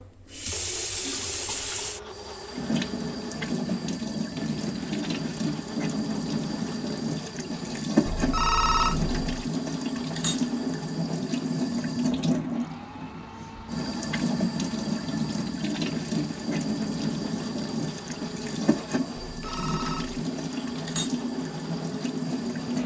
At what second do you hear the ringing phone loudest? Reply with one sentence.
The loudest moment of the ringing phone is at 9 seconds.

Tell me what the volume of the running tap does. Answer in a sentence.
The volume of the running tap stays about the same.